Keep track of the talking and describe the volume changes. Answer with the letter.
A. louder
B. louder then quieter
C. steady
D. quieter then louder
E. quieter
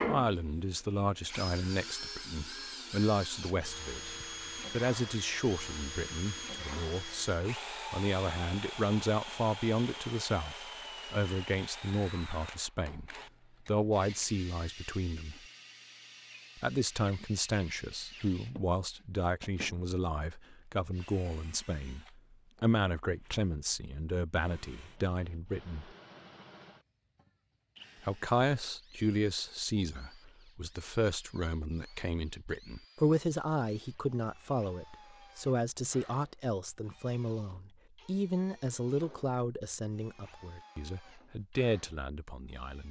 C.